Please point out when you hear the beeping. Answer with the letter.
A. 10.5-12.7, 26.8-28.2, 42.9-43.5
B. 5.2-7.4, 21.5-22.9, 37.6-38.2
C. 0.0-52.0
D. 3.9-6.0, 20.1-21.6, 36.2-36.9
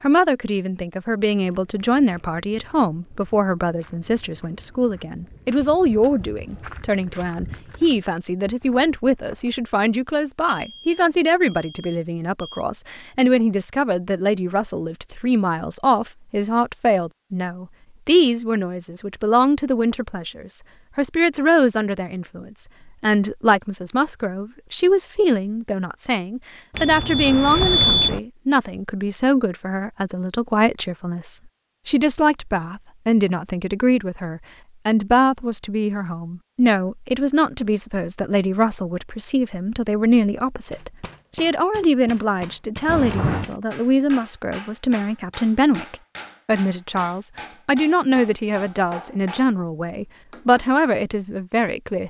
A.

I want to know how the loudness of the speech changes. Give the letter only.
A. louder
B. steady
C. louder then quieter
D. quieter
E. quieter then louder
B.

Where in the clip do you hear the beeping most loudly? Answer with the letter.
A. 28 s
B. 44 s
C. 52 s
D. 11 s
A.